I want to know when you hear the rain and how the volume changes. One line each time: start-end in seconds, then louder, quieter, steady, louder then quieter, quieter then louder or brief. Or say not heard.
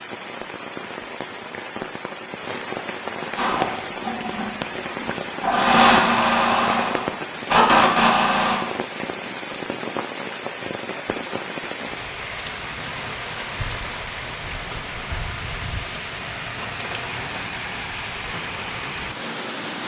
0.0-19.8 steady.